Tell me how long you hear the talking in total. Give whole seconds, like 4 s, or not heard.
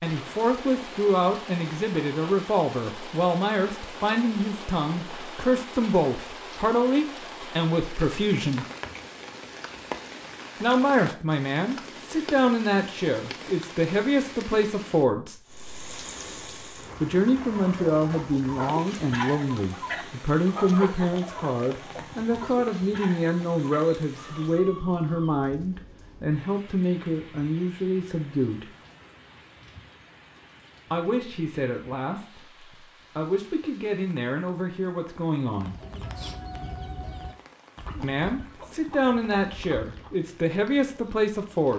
34 s.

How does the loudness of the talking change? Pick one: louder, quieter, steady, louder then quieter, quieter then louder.
steady.